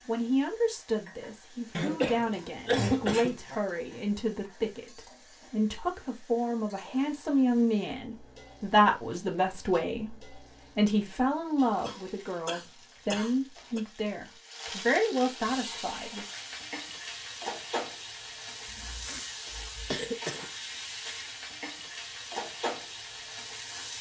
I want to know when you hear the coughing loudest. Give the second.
3 s.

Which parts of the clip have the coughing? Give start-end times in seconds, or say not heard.
1.7-3.5, 11.8-13.8, 18.6-20.4.